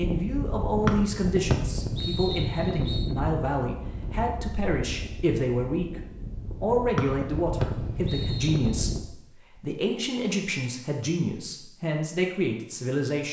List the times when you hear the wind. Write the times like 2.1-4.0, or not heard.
0.0-9.1.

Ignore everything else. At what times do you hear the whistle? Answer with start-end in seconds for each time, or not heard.
0.8-3.1, 7.0-8.8.